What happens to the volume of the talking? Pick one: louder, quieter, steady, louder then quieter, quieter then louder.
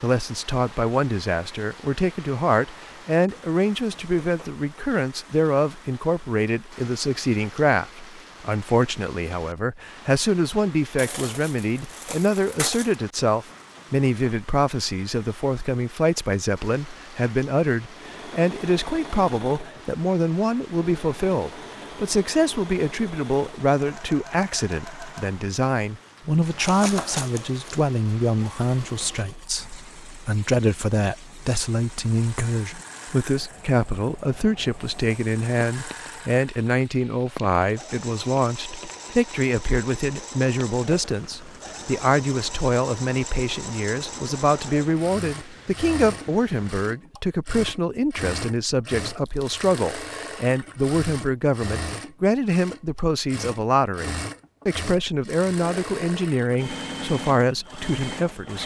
steady.